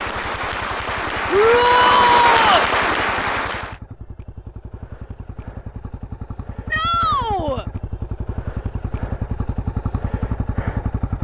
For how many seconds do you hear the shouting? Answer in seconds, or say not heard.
2 s.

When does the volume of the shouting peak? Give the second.
2 s.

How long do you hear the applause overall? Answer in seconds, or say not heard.
4 s.